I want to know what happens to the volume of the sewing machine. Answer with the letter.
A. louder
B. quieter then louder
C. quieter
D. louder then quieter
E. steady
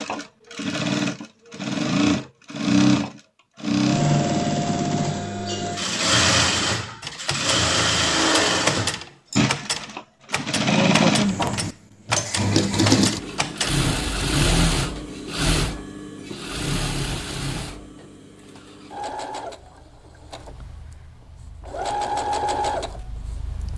C.